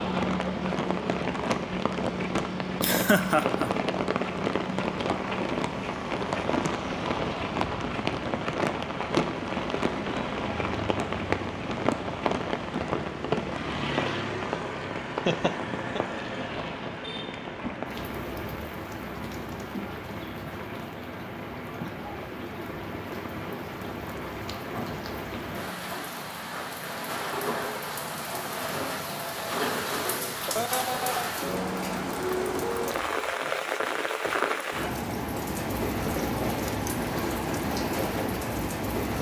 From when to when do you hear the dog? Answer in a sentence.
The dog can't be heard in this clip.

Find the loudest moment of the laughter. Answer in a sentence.
The volume of the laughter peaks at 3 seconds.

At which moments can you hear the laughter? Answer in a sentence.
You can hear the laughter from 2.8 to 3.7 s, from 15.2 to 16.0 s and from 30.4 to 31.3 s.